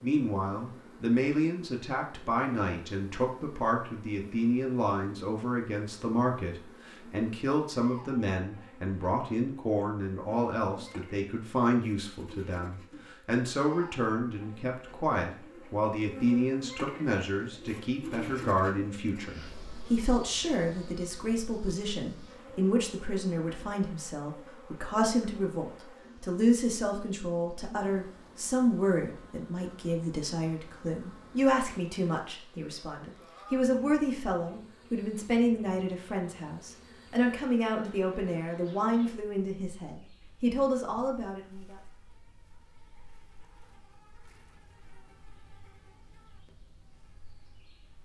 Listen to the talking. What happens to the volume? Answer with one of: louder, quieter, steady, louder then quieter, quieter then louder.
steady.